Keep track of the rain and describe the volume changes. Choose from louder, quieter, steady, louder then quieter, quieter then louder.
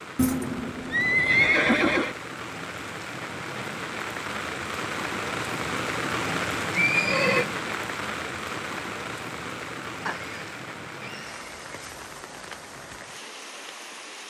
louder then quieter.